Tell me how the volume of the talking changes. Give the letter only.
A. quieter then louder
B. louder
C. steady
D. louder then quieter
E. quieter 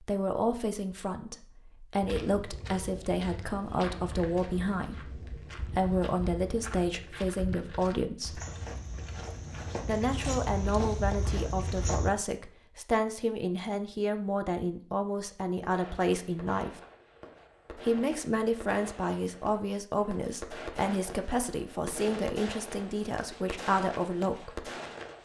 C.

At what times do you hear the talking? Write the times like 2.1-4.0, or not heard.
0.0-8.4, 9.8-16.8, 17.8-24.6.